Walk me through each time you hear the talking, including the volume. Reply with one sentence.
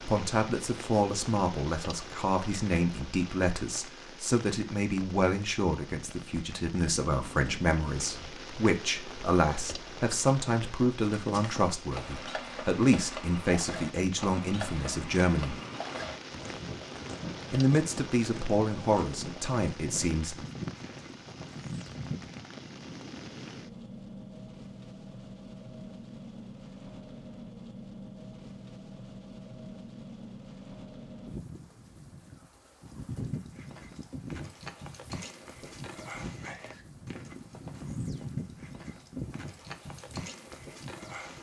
The talking can be heard from 0.1 to 15.6 s, at a steady volume; and briefly from 17.5 to 20.4 s.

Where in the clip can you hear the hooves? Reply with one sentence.
The hooves can be heard from 11.2 to 22.4 s and from 33.1 to 41.3 s.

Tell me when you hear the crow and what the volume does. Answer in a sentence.
You can't hear the crow here.